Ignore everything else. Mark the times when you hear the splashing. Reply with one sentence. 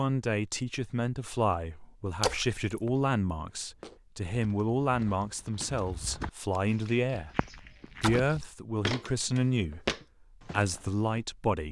The splashing can be heard from 2.2 to 2.6 s and from 8.0 to 8.6 s.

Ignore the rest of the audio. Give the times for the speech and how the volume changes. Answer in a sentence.
The speech can be heard from 0.0 to 7.3 s, at a steady volume; briefly from 8.0 to 9.8 s; and briefly from 10.4 to 11.6 s.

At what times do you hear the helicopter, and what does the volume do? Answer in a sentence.
The helicopter can't be heard in this clip.